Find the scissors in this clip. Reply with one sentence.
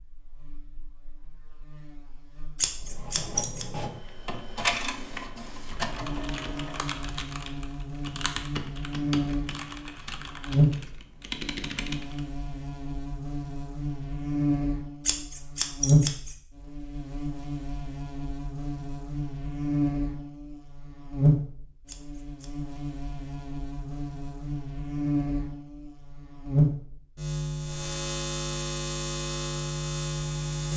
You can hear the scissors from 2.6 to 3.6 s, from 15.1 to 16.4 s and from 21.9 to 22.5 s.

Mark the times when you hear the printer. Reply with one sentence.
You can hear the printer from 2.8 to 7.0 s.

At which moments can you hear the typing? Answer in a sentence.
The typing can be heard from 5.7 to 12.2 s.